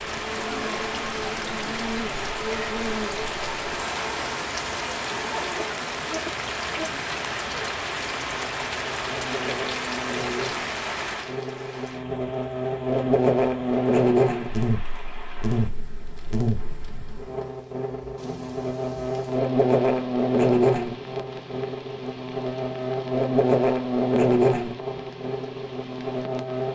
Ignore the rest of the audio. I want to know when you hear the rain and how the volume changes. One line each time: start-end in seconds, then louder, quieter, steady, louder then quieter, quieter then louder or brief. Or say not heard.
0.0-26.7 quieter.